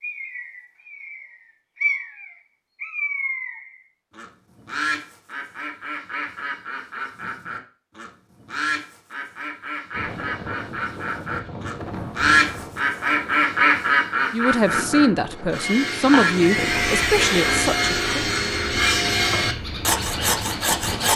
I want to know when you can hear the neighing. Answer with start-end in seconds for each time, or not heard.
16.1-17.6.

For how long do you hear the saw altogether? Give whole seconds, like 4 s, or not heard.
6 s.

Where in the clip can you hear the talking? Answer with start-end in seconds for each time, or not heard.
14.3-18.1.